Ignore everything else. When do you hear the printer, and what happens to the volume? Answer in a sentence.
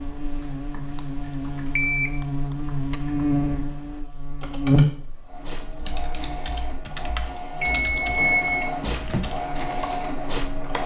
The printer can be heard from 5.2 to 10.8 s, getting louder.